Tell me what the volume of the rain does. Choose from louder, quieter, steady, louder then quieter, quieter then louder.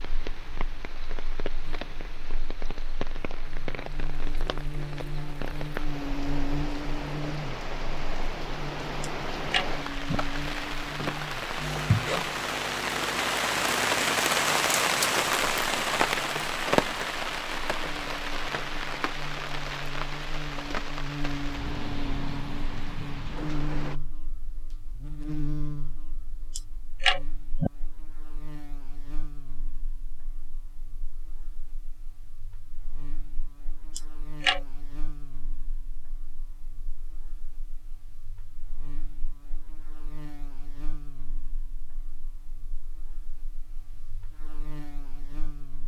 louder then quieter.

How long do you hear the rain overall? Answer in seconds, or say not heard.
24 s.